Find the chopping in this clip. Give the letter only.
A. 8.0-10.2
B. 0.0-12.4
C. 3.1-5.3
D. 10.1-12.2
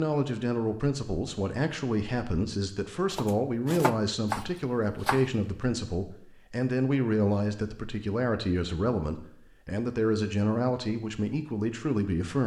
C.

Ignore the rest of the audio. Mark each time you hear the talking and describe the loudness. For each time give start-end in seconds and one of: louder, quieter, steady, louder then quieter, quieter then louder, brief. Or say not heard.
0.0-12.4 steady.